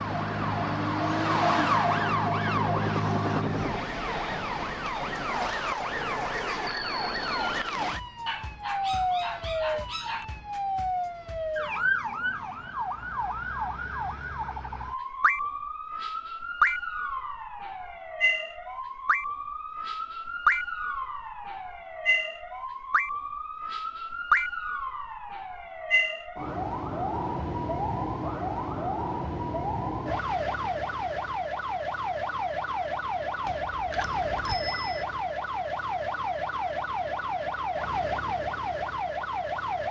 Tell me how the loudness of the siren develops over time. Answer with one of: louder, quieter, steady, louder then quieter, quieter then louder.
steady.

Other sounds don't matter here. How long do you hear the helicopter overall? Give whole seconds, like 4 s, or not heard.
4 s.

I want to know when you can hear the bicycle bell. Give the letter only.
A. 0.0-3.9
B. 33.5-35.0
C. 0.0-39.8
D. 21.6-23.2
B.